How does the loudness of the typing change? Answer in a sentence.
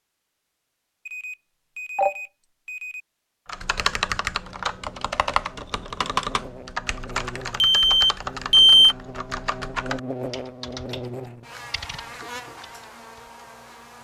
The volume of the typing goes down.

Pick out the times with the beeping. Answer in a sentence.
You can hear the beeping from 1.1 to 3.0 s and from 7.6 to 8.9 s.